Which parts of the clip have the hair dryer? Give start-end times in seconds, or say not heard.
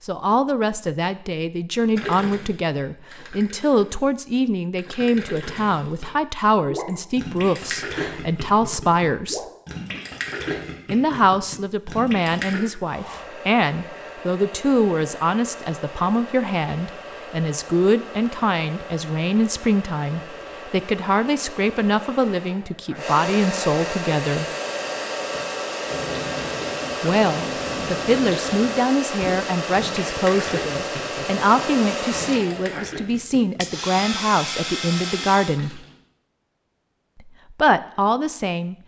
12.8-35.6.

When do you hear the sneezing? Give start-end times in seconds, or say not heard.
not heard.